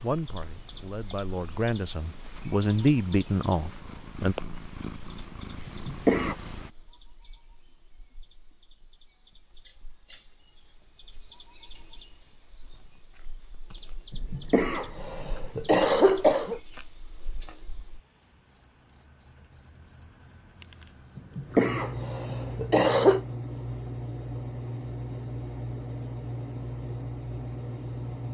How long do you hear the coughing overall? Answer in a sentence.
You can hear the coughing for 5 seconds altogether.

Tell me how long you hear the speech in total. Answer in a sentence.
You can hear the speech for 4 seconds altogether.